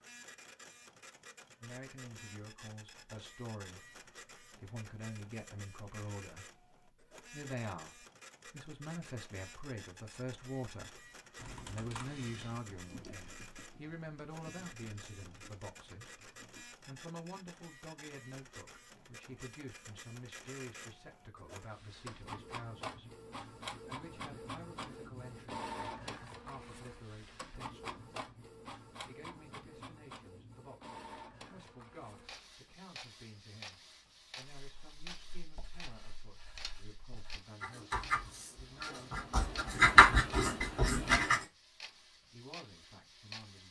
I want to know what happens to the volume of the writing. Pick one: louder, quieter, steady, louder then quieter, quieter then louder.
louder.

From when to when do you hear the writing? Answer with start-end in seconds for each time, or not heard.
34.6-41.5.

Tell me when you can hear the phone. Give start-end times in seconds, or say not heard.
not heard.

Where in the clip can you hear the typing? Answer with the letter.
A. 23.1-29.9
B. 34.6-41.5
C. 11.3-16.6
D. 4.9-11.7
C.